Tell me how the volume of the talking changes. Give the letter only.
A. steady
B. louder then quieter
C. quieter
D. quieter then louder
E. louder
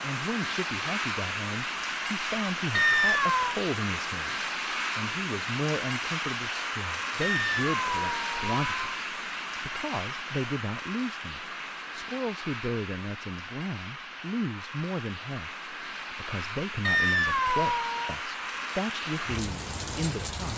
A.